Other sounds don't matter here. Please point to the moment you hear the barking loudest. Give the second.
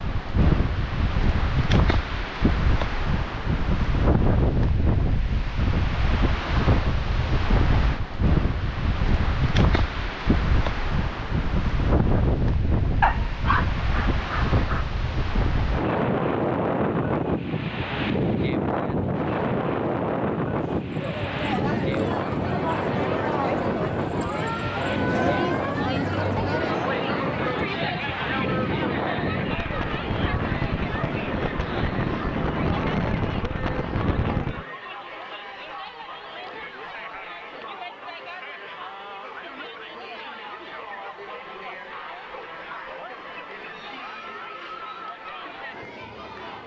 13 s.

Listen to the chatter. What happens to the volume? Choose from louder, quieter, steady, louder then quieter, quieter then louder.
quieter.